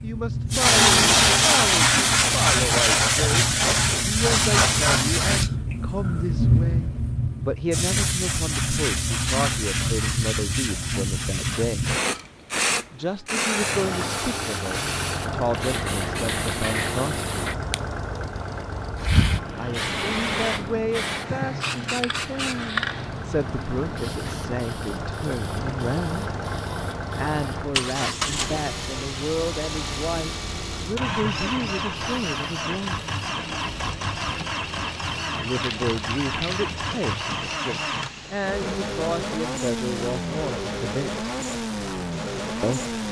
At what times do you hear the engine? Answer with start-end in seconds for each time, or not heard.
13.6-43.0.